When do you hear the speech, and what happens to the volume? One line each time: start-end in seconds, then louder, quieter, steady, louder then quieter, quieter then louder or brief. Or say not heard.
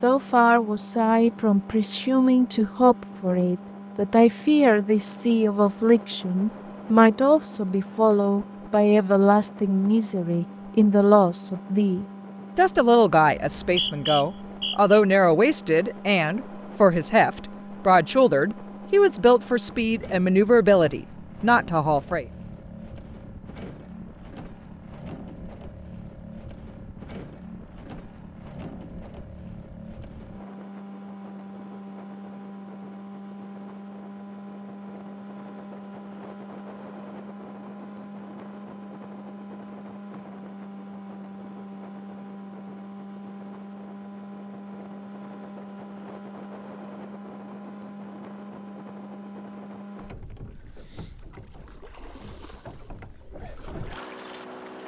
0.0-22.2 steady.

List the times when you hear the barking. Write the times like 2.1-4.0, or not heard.
not heard.